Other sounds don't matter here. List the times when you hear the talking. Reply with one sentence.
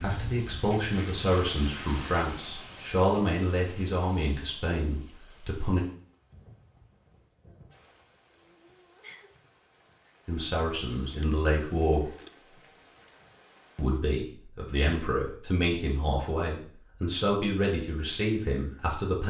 The talking can be heard from 0.0 to 5.8 s, from 10.2 to 12.1 s and from 13.8 to 19.2 s.